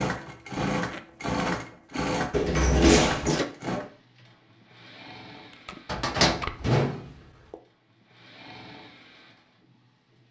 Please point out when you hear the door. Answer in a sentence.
The door can be heard from 2.3 to 3.5 s and from 5.8 to 7.5 s.